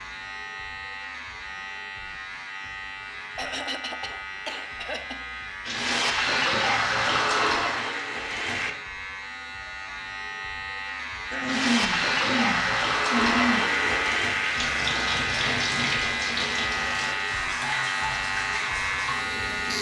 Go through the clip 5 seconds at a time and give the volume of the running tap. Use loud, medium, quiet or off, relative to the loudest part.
off, loud, loud, medium.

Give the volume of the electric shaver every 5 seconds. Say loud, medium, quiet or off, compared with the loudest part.
medium, medium, loud, loud.